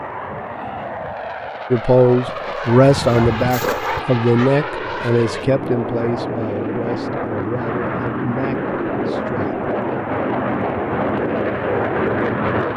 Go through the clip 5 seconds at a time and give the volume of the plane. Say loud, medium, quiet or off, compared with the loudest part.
medium, loud, loud.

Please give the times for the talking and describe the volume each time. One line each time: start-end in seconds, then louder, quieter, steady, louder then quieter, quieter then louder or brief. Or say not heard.
1.7-9.6 quieter.